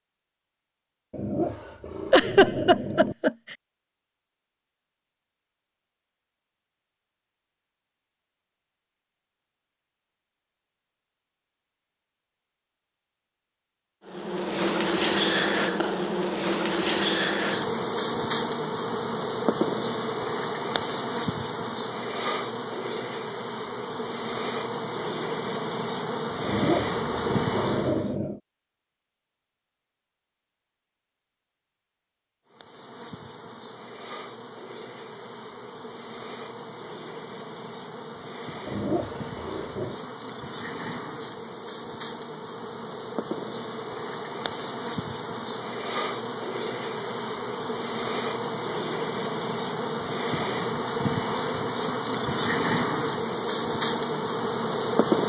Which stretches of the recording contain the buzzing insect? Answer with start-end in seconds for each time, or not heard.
14.1-28.1, 32.5-55.2.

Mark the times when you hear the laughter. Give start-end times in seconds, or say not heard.
2.1-3.5.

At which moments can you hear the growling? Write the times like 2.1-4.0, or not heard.
1.1-3.1, 26.4-28.4, 38.6-40.0.